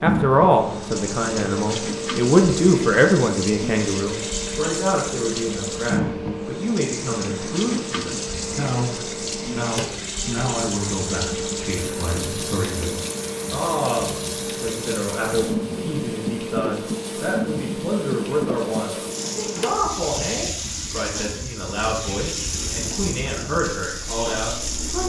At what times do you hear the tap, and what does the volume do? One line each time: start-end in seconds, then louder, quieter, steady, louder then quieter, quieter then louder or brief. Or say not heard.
0.0-25.0 steady.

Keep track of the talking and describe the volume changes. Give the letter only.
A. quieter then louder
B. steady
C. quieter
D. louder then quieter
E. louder
C.